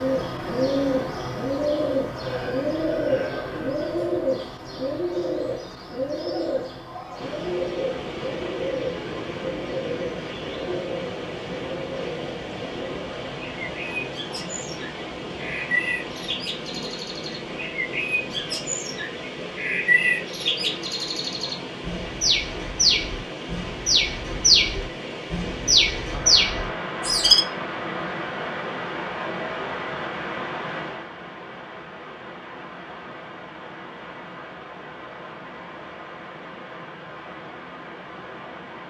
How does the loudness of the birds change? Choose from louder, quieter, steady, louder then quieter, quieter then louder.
quieter then louder.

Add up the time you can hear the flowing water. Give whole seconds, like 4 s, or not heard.
32 s.